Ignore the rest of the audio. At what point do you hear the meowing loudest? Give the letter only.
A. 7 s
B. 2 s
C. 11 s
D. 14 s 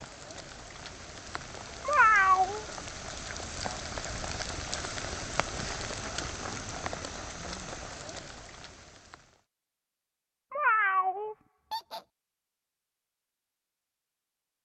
B.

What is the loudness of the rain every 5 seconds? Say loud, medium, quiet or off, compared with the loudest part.
loud, loud, off.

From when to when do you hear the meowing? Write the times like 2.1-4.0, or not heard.
1.9-2.6, 10.5-12.0.